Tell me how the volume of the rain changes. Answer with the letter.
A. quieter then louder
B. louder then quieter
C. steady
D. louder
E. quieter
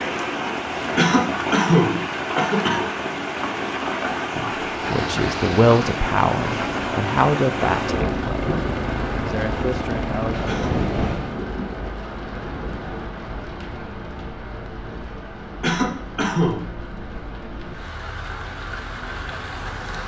E.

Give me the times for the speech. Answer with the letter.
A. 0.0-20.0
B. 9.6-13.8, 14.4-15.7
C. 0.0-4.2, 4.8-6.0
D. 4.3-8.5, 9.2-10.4
D.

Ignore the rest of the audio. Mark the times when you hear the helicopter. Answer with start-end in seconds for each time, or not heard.
4.7-11.4.